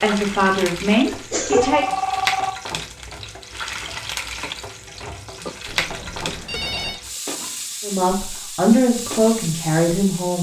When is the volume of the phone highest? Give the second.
2 s.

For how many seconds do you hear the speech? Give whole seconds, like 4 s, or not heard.
4 s.